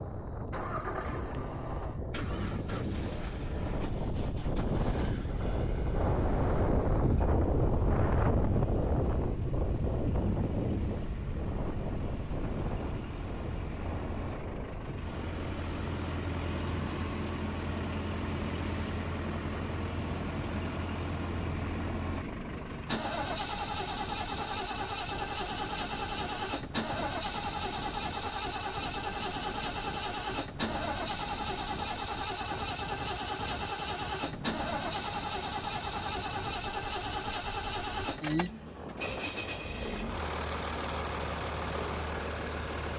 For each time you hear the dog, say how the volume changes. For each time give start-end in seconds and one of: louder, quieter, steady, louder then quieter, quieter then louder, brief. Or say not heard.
not heard.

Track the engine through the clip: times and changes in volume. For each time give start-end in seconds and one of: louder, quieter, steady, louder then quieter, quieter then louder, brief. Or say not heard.
0.0-42.9 louder.